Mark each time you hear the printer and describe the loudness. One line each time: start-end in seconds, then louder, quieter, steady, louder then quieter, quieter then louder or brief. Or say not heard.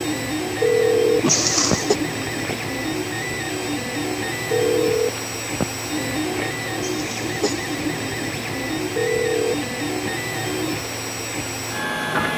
0.0-12.3 steady.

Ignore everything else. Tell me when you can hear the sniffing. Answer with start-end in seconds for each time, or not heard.
1.2-1.9, 6.8-7.7.